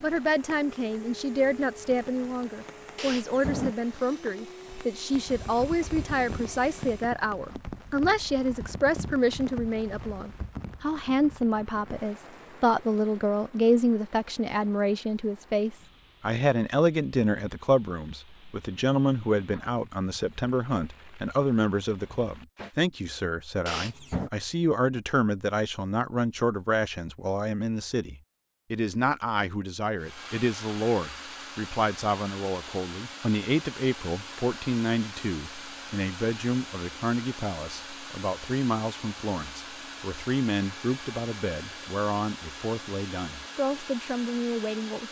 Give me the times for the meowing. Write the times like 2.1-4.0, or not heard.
3.0-3.8, 23.6-24.3.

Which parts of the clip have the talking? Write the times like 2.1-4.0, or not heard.
0.0-45.0.